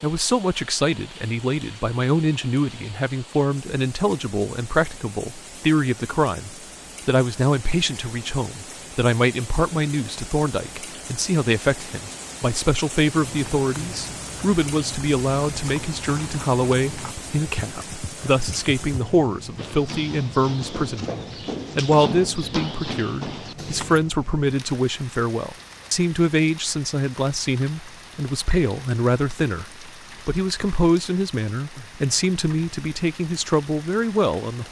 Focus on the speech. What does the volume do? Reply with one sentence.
The loudness of the speech stays about the same.